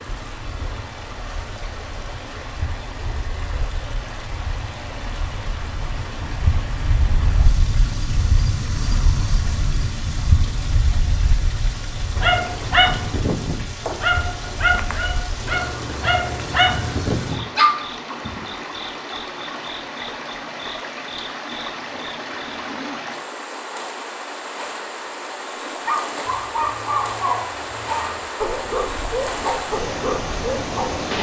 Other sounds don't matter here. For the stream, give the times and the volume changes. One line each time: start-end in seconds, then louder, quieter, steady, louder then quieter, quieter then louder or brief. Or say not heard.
0.0-31.1 louder.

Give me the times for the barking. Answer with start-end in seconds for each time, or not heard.
12.2-18.4, 25.9-30.9.